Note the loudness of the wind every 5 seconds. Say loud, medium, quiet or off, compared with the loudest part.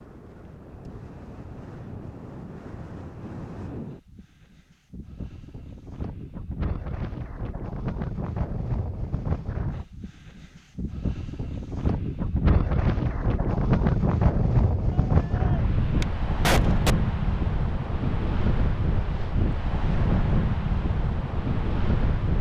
quiet, medium, loud, loud, loud.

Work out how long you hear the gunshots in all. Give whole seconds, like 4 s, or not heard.
2 s.